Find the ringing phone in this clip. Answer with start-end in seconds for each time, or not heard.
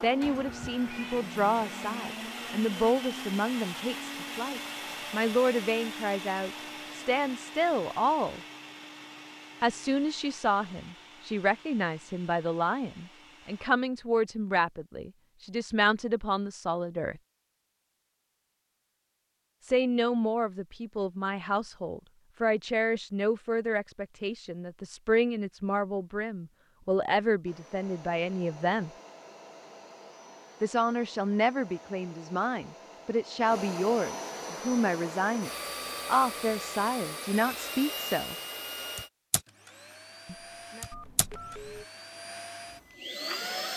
40.9-41.9.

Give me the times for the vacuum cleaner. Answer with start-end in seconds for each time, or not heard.
0.0-13.7, 27.4-43.7.